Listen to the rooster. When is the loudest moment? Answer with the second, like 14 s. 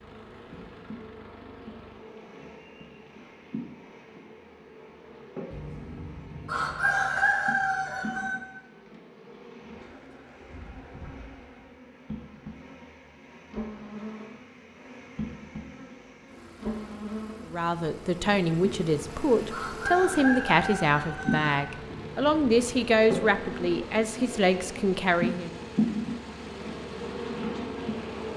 7 s.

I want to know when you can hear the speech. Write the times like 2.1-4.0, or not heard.
17.4-25.6.